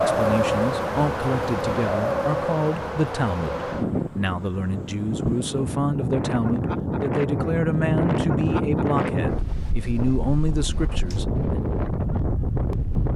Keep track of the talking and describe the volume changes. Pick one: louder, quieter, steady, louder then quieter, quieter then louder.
steady.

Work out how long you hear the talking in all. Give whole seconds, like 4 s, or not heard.
12 s.